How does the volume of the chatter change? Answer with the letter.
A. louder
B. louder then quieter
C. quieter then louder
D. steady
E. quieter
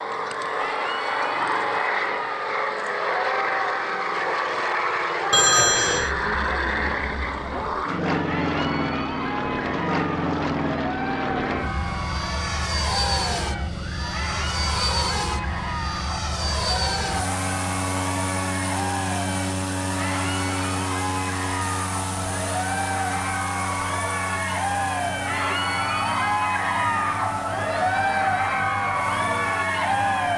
A.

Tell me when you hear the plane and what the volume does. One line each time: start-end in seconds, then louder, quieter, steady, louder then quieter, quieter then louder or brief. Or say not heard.
0.0-30.3 quieter.